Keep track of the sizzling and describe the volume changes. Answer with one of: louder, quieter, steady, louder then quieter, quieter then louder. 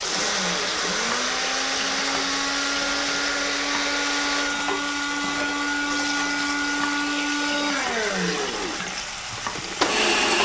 steady.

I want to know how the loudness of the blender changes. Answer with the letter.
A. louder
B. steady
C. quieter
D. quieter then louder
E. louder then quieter
B.